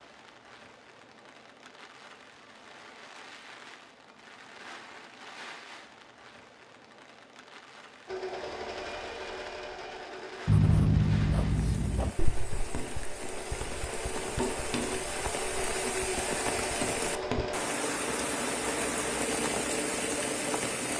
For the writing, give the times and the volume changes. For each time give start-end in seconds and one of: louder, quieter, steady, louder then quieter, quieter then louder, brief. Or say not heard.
10.4-17.5 quieter.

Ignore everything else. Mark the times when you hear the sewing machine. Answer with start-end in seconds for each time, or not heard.
8.1-20.9.